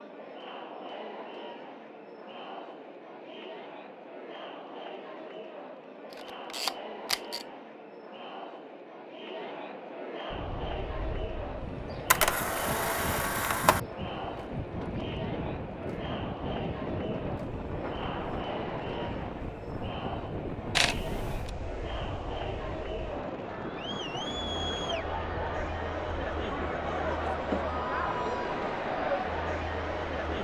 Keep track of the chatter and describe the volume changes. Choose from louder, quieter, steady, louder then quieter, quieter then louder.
louder.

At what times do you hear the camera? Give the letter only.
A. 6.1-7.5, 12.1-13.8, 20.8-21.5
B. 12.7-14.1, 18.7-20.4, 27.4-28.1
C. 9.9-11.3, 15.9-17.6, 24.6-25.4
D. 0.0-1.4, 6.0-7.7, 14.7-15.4
A.